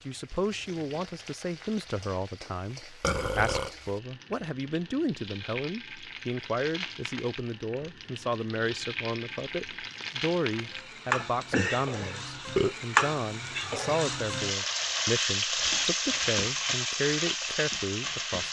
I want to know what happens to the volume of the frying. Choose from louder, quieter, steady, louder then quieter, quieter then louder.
louder.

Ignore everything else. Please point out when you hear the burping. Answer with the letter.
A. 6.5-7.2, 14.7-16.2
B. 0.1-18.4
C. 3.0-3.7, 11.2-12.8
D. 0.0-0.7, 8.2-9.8
C.